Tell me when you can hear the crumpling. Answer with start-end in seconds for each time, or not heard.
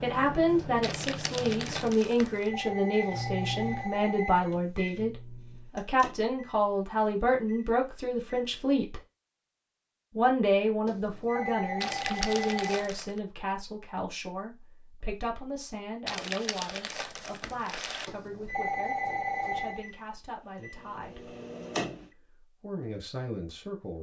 0.8-2.5, 11.8-13.2, 16.1-18.1.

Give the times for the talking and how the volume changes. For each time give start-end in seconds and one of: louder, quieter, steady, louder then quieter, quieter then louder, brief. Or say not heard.
0.0-9.0 steady
10.2-21.3 quieter
22.1-23.9 brief.